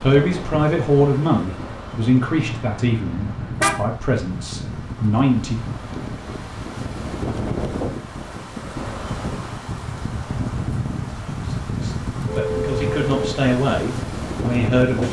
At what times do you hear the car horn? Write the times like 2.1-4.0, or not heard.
2.2-3.8, 12.2-13.4.